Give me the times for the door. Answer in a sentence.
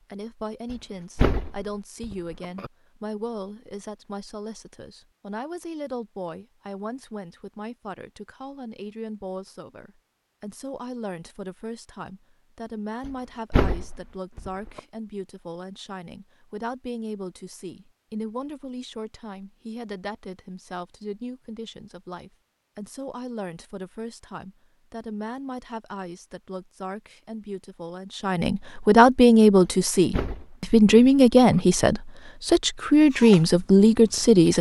The door can be heard from 0.7 to 2.7 s, from 13.1 to 14.8 s and from 29.6 to 31.6 s.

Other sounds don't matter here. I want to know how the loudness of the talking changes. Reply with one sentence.
The loudness of the talking goes up.